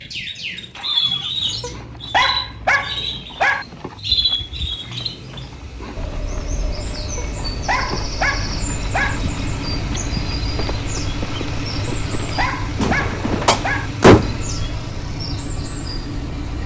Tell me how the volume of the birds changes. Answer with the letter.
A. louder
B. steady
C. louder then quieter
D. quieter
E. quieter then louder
D.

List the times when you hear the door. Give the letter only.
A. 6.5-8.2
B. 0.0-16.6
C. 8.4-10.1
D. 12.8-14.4
D.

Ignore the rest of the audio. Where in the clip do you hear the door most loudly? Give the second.
14 s.